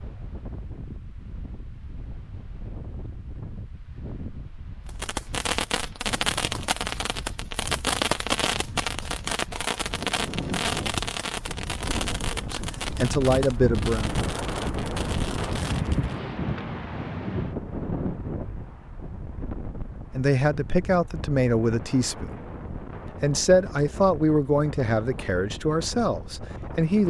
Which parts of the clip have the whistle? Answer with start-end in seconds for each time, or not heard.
not heard.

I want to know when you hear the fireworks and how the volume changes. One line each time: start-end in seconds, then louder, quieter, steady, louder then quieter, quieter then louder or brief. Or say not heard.
4.8-16.1 quieter.